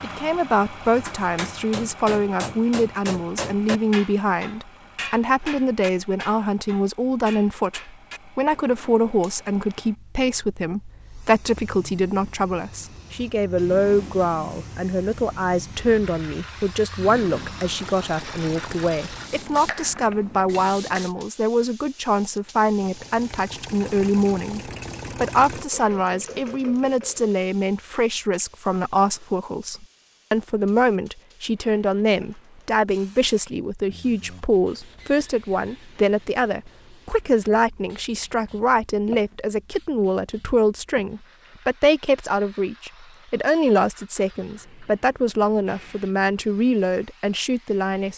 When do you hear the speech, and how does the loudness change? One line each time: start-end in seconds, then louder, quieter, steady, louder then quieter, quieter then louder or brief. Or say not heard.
0.0-48.1 steady.